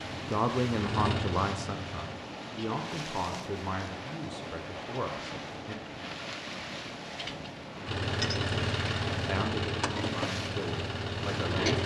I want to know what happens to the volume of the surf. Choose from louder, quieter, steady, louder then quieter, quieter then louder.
steady.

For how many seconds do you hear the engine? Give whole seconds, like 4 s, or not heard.
6 s.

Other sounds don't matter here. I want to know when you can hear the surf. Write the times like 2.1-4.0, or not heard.
0.0-11.6.